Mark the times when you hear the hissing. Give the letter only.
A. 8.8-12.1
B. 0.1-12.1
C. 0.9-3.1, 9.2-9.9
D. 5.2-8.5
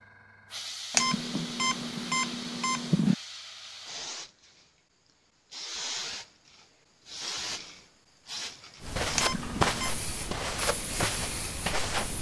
B.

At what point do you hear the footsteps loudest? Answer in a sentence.
The loudest moment of the footsteps is at 10 seconds.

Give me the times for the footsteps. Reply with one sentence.
The footsteps can be heard from 8.8 to 12.1 s.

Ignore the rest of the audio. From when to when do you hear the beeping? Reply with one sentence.
You can hear the beeping from 0.9 to 3.1 s and from 9.2 to 9.9 s.